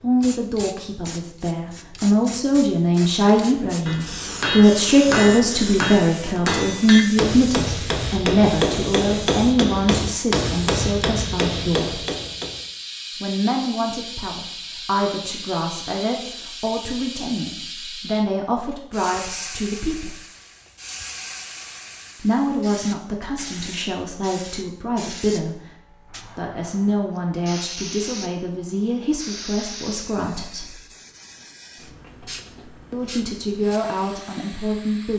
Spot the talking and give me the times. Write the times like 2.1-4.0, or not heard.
0.0-12.0, 13.2-20.1, 22.2-30.8, 32.9-35.1.